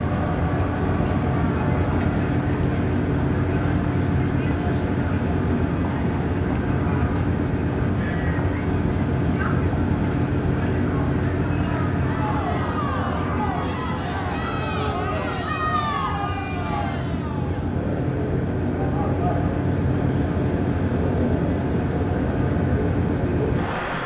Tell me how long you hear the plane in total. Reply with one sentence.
You can hear the plane for 24 seconds altogether.